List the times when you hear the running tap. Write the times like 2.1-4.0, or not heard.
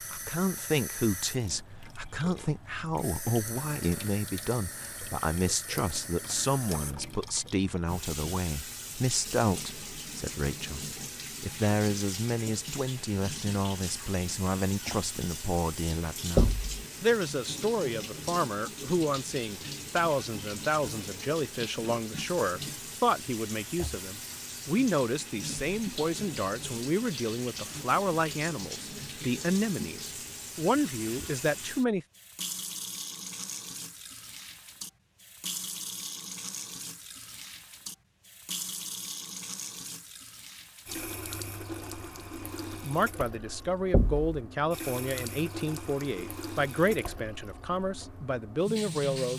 0.0-49.3.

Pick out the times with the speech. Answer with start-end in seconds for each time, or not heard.
0.1-32.0, 42.7-49.3.